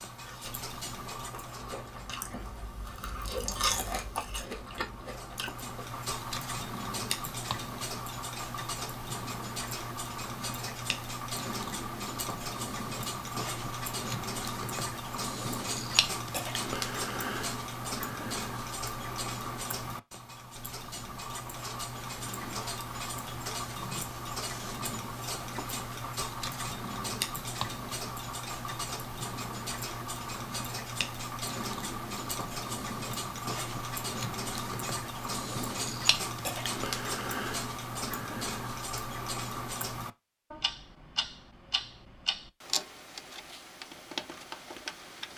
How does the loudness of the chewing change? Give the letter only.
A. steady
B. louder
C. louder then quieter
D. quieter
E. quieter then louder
C.